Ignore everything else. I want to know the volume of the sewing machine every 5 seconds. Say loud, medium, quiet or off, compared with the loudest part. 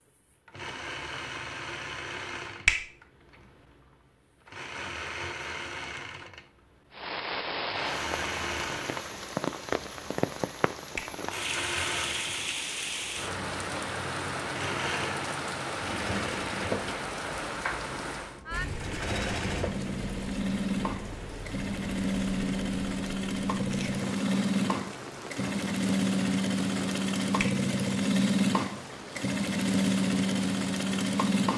quiet, medium, medium, medium, loud, loud, loud.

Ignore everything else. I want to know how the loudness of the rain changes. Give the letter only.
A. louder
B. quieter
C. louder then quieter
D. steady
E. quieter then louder
B.